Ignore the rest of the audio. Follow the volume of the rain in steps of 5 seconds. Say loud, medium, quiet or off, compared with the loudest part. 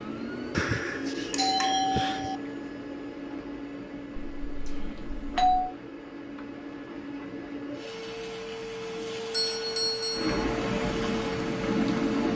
quiet, quiet, loud.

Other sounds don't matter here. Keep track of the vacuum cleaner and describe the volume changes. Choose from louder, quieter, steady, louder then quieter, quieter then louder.
quieter then louder.